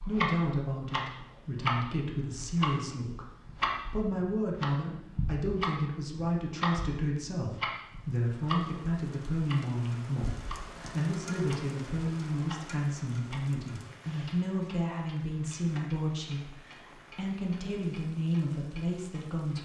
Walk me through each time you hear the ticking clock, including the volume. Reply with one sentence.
You can hear the ticking clock from 0.0 to 19.6 s, getting quieter.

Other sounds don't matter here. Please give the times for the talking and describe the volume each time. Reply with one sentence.
You can hear the talking from 0.1 to 19.6 s, at a steady volume.